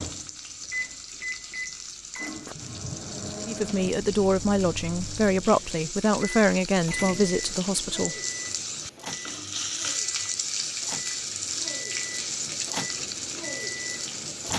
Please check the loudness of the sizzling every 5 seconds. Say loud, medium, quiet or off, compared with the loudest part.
medium, loud, loud.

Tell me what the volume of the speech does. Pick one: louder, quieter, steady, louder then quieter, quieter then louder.
steady.